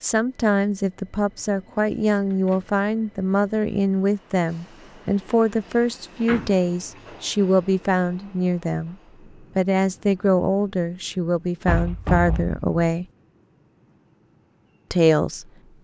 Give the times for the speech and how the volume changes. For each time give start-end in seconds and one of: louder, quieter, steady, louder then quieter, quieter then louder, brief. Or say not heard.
0.0-13.1 steady
14.9-15.7 brief.